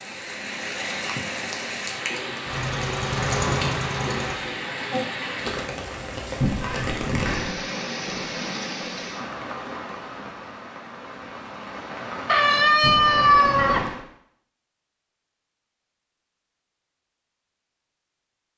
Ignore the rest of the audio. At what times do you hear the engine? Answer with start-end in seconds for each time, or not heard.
2.4-4.4.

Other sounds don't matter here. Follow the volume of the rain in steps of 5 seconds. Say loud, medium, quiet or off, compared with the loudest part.
loud, loud, loud, off.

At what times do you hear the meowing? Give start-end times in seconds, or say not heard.
6.4-7.5, 12.8-13.9.